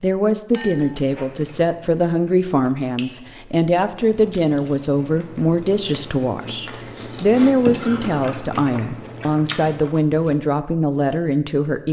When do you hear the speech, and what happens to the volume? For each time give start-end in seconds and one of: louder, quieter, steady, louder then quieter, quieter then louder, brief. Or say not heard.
0.0-11.8 steady.